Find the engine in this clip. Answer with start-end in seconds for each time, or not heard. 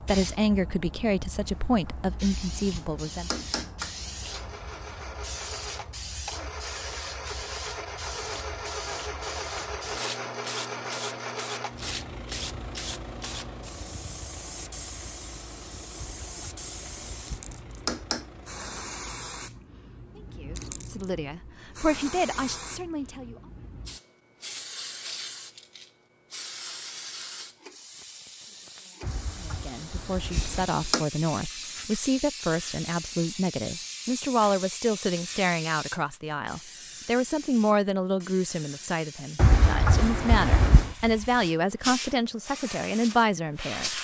4.2-18.9.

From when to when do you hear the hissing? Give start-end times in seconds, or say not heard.
0.0-43.9.